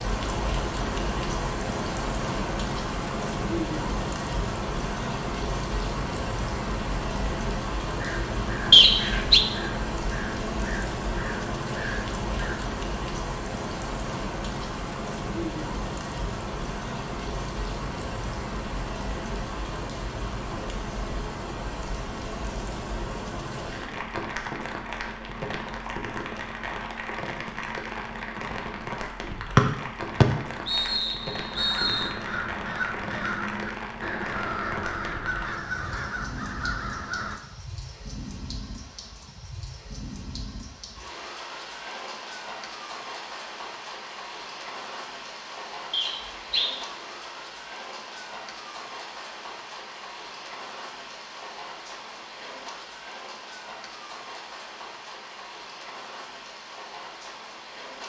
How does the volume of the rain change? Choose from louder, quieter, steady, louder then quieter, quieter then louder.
quieter.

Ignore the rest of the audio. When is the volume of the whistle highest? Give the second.
9 s.